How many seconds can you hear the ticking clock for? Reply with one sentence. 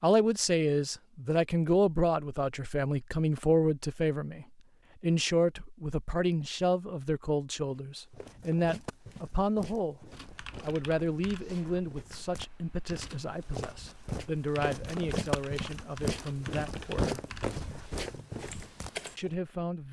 The ticking clock can't be heard in this clip.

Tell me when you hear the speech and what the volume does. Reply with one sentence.
You can hear the speech from 0.0 to 17.2 s, getting quieter; and briefly from 19.1 to 19.8 s.